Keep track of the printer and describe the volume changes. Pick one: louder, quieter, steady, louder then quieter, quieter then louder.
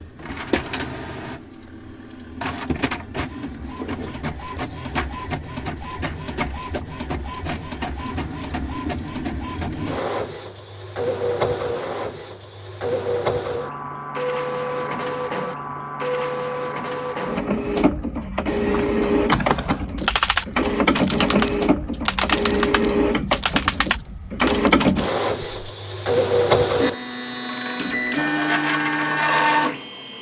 louder.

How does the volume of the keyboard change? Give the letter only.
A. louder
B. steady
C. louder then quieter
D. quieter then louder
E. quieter
B.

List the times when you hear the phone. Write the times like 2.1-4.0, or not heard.
not heard.